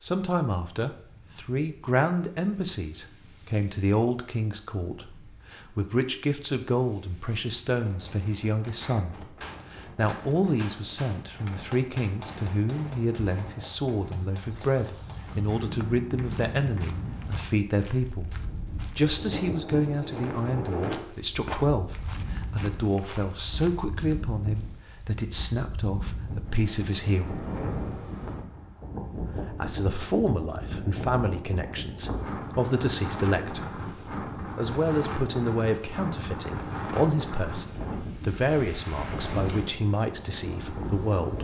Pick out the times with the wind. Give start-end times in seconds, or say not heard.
0.0-41.4.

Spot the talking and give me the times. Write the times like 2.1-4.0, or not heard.
0.0-18.4, 18.9-27.4, 29.1-41.4.